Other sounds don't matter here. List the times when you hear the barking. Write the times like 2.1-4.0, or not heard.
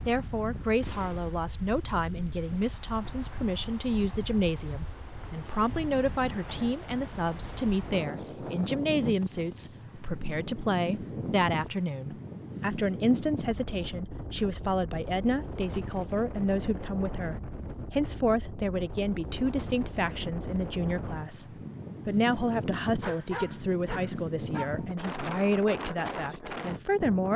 23.0-24.9.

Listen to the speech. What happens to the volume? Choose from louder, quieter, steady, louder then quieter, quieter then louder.
steady.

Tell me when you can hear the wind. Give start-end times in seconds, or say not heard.
0.0-27.3.